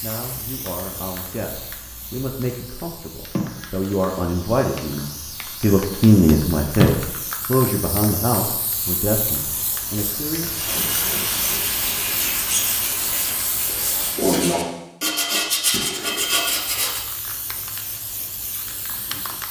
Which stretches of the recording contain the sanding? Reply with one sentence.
You can hear the sanding from 10.4 to 17.1 s.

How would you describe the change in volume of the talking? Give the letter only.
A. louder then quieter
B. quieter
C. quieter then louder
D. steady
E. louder
A.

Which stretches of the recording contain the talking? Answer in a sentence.
You can hear the talking from 0.0 to 10.7 s.